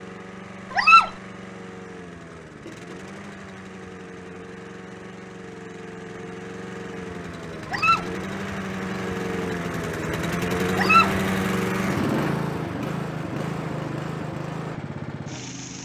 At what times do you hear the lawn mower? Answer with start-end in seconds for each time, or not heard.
0.0-15.7.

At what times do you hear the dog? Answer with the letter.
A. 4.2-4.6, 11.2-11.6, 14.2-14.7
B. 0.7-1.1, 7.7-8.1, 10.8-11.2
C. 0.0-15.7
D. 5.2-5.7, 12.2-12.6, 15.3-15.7
B.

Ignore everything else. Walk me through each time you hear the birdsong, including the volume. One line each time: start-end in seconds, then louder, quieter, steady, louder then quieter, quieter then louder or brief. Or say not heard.
not heard.